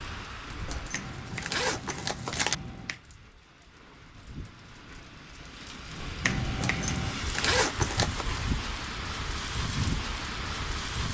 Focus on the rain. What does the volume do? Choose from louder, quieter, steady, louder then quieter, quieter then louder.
quieter then louder.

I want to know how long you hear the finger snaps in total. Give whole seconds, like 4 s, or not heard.
3 s.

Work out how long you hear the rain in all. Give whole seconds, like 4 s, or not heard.
11 s.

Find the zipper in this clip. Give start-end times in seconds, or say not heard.
0.7-2.5, 6.6-8.2.